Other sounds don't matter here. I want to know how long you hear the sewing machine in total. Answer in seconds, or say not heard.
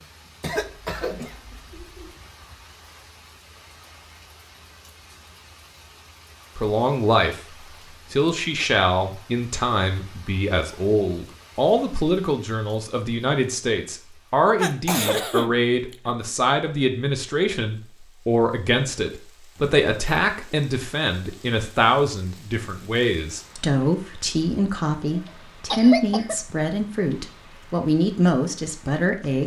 not heard.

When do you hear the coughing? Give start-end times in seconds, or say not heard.
0.4-2.1, 14.6-16.1, 25.1-26.4.